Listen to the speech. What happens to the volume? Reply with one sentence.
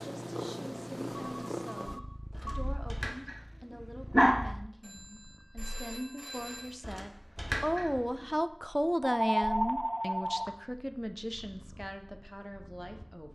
The loudness of the speech goes up, then down.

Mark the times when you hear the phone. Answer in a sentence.
You can hear the phone from 1.1 to 2.5 s, from 4.8 to 6.8 s and from 9.0 to 10.5 s.